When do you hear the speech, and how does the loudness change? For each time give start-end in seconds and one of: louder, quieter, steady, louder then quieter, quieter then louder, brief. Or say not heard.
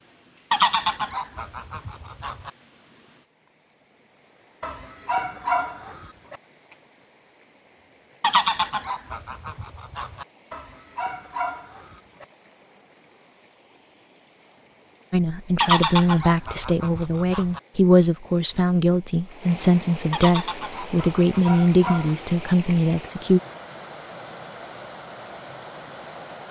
15.1-23.4 steady.